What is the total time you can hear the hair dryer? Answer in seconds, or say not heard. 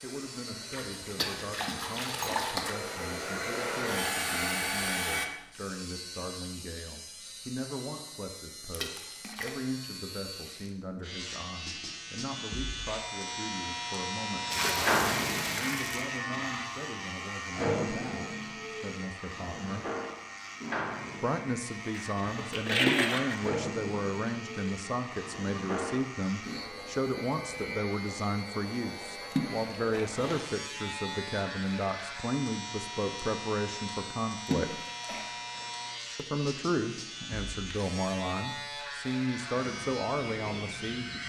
5 s.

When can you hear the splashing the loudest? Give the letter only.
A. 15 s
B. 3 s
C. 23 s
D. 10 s
C.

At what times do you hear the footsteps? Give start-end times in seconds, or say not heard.
not heard.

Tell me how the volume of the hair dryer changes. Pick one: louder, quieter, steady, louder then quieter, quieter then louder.
louder.